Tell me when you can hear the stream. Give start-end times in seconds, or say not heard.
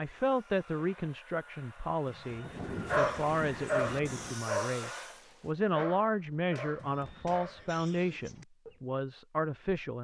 not heard.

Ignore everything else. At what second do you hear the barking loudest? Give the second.
3 s.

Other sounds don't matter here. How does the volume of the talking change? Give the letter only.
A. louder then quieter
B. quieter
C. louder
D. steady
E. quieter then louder
D.